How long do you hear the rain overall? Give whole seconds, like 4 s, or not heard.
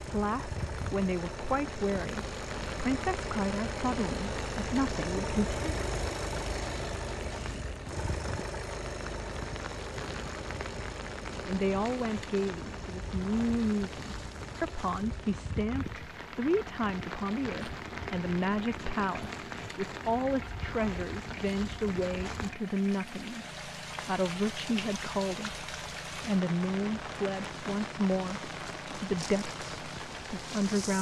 31 s.